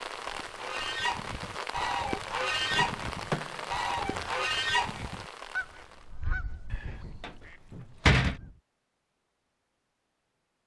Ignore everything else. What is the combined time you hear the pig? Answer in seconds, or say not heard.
not heard.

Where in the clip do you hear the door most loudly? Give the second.
8 s.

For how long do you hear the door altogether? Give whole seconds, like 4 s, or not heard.
3 s.